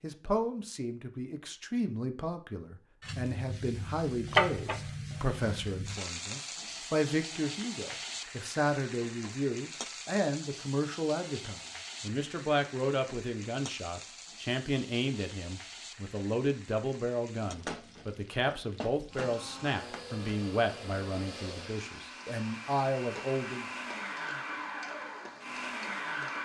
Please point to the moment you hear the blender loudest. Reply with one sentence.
The volume of the blender peaks at 26 seconds.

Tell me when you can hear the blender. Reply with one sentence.
You can hear the blender from 19.1 to 26.3 s.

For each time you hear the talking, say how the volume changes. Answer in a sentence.
The talking can be heard from 0.0 to 23.6 s, at a steady volume.